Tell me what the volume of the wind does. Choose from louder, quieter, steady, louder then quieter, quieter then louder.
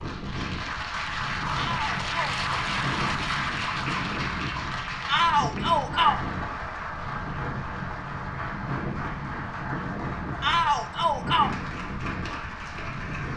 steady.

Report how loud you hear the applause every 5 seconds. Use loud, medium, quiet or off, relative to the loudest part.
loud, medium, medium.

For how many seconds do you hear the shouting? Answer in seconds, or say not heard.
3 s.